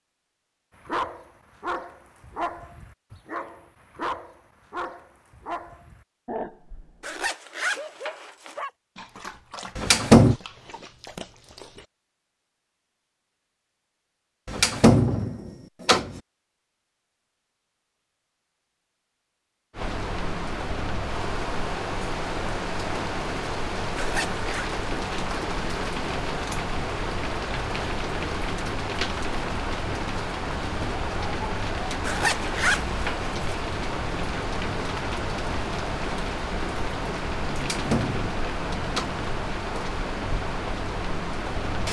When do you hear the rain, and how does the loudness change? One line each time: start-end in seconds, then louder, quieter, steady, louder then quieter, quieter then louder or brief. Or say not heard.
19.8-41.8 steady.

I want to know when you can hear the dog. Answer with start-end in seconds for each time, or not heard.
0.8-11.8.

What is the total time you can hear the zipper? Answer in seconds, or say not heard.
4 s.